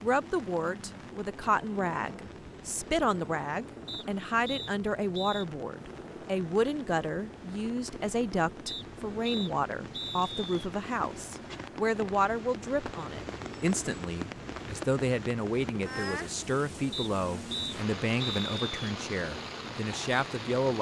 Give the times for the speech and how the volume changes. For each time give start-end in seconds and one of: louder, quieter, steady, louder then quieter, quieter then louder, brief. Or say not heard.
0.0-20.7 steady.